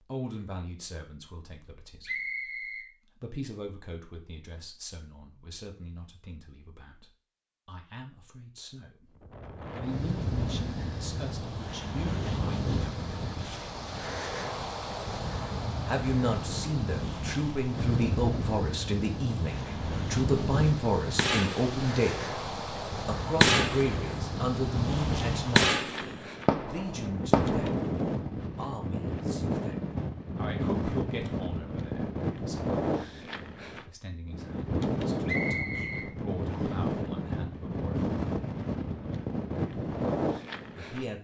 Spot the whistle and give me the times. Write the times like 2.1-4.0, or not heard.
2.0-2.9, 35.2-36.8.